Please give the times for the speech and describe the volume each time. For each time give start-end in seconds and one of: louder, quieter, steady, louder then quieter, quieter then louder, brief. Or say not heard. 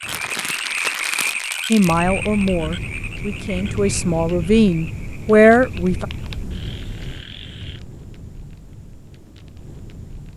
1.7-6.0 quieter then louder.